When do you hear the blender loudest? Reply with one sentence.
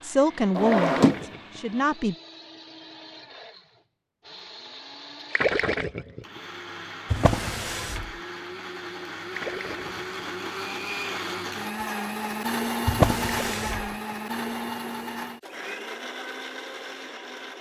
The volume of the blender peaks at 13 seconds.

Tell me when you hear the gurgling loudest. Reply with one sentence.
The loudest moment of the gurgling is at 6 seconds.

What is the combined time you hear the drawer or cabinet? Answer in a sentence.
You can hear the drawer or cabinet for 3 seconds altogether.